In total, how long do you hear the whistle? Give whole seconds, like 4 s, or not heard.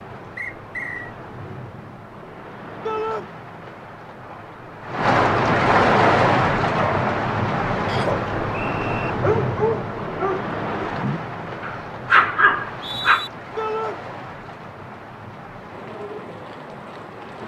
3 s.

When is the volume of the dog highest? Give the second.
12 s.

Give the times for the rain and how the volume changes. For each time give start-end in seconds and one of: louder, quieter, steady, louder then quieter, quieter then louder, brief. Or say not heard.
0.0-17.4 louder then quieter.